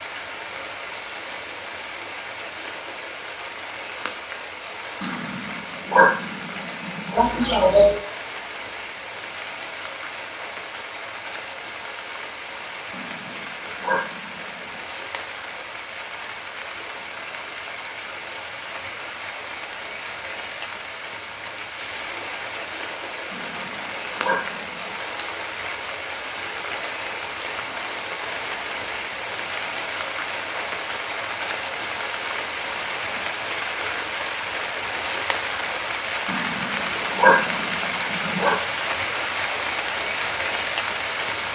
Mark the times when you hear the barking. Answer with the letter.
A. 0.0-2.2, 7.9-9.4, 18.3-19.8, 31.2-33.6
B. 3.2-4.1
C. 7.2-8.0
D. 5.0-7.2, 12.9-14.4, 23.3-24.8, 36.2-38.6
D.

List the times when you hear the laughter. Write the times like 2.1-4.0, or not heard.
7.2-8.0.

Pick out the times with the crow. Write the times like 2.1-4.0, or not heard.
not heard.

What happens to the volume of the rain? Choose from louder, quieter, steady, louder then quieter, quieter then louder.
louder.